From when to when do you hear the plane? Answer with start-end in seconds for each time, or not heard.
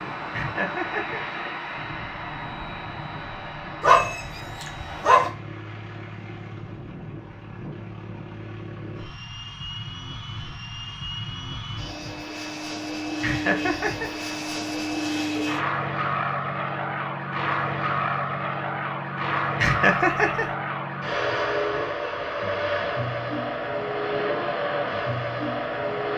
0.0-26.1.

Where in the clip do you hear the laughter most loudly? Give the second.
20 s.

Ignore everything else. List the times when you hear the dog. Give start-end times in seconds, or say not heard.
3.8-5.3.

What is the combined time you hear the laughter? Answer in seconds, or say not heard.
3 s.